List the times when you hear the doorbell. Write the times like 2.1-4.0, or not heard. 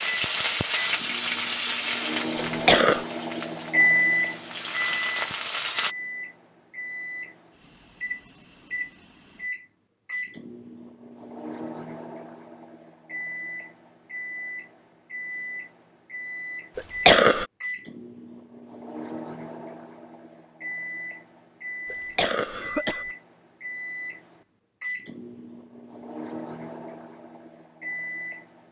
not heard.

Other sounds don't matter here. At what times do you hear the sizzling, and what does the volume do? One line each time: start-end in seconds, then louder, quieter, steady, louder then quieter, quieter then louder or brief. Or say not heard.
0.0-6.0 quieter then louder.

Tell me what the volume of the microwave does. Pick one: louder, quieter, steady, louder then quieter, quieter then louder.
quieter.